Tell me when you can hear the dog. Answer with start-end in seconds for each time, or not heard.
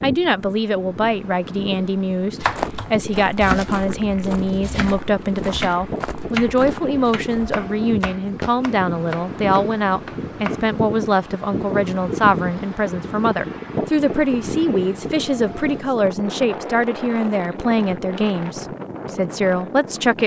not heard.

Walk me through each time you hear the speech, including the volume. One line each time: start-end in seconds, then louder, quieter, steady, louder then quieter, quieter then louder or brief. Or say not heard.
0.0-20.2 steady.